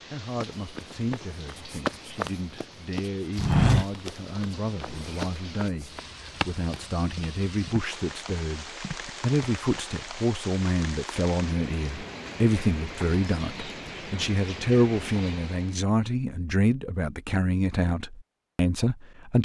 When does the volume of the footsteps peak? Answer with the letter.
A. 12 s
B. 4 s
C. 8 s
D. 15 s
B.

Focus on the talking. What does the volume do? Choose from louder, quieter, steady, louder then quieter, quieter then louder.
louder.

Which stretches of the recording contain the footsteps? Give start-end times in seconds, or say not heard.
0.2-9.6.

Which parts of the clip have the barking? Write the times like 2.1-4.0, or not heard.
not heard.